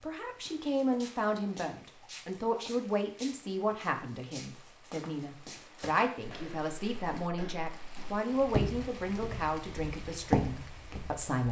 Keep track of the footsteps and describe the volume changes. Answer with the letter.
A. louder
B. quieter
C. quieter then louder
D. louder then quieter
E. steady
A.